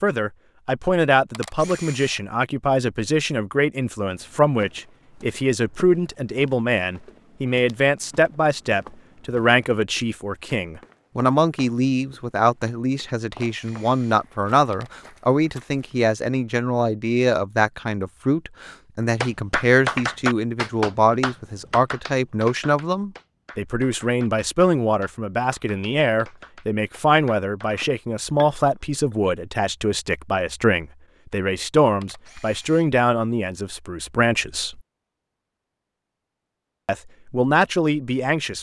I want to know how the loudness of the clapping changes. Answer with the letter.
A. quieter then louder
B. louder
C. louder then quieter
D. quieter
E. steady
D.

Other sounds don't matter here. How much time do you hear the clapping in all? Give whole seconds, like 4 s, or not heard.
9 s.